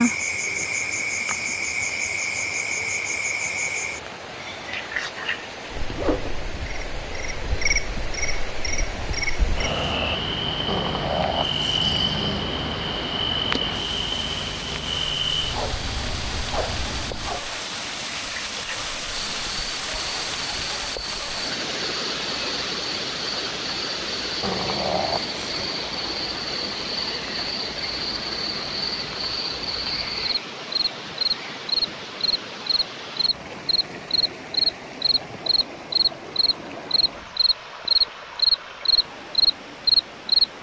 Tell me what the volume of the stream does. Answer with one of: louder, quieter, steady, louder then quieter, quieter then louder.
louder then quieter.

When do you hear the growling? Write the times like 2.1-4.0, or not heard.
10.7-12.5, 24.4-25.7.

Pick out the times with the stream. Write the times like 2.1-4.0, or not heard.
0.0-40.5.